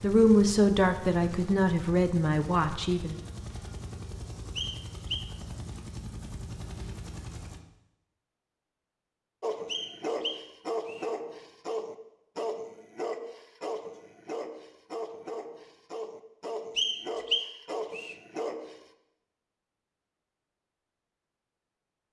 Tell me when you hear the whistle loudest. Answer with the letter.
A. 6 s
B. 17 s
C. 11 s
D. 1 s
B.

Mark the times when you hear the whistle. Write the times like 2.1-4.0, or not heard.
4.5-5.3, 9.7-11.1, 16.8-18.1.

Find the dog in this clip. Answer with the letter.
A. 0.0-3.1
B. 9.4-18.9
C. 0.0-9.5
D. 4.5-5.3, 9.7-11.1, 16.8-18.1
B.